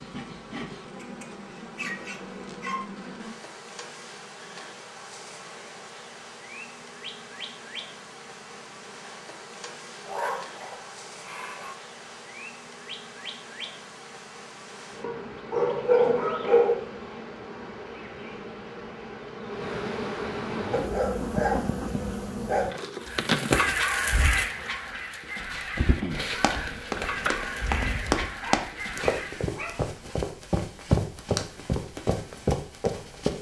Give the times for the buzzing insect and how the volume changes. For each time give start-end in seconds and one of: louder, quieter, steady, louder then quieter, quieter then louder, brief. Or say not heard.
0.0-28.4 louder.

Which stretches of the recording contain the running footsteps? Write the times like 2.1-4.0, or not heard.
26.2-33.3.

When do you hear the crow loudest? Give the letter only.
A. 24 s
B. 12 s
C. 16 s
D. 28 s
A.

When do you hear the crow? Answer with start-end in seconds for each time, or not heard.
23.0-29.5.